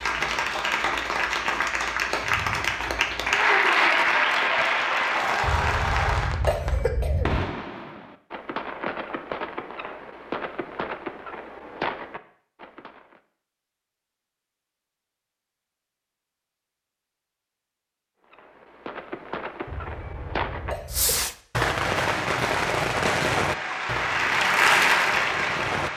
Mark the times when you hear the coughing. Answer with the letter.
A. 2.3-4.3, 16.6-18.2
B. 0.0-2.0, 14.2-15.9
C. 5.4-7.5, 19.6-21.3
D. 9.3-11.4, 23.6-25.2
C.